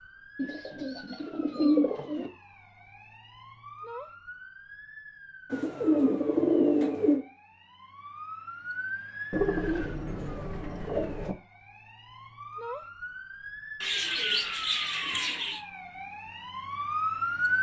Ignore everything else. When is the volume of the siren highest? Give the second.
17 s.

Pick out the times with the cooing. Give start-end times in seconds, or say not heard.
0.3-2.3, 5.5-7.2, 9.3-11.3, 13.8-15.6.